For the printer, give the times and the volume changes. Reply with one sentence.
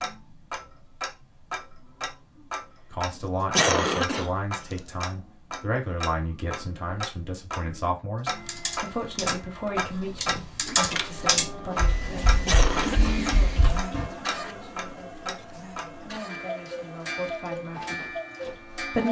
You can hear the printer from 8.3 to 19.0 s, getting louder then quieter.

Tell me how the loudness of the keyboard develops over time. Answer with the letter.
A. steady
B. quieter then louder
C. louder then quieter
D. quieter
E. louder
C.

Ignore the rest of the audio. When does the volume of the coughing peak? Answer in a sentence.
The volume of the coughing peaks at 4 seconds.